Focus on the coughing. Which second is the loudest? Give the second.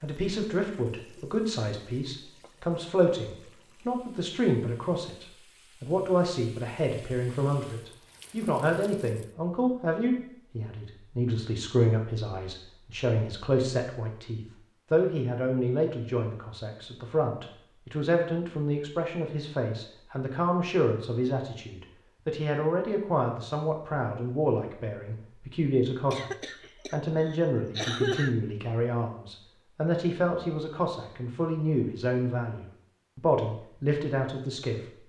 28 s.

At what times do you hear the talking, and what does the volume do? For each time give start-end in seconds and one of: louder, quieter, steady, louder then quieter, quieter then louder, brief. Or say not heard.
0.0-34.8 steady.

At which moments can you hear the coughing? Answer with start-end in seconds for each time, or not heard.
26.1-28.4.